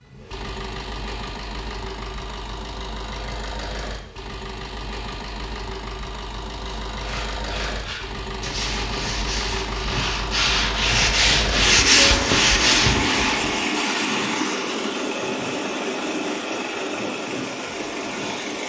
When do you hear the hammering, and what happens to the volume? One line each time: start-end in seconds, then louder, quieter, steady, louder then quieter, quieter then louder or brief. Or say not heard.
not heard.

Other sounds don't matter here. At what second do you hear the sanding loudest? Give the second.
12 s.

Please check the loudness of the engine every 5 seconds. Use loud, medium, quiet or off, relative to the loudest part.
medium, medium, loud, loud.